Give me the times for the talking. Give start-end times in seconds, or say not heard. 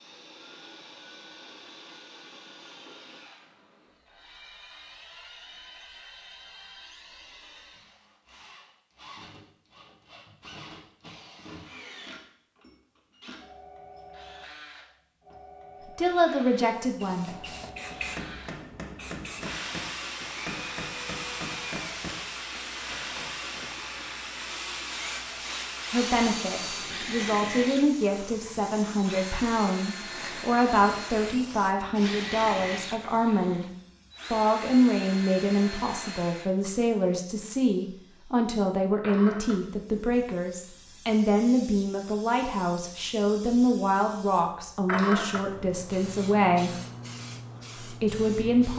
15.9-17.3, 25.9-33.7, 34.3-46.7, 47.8-48.7.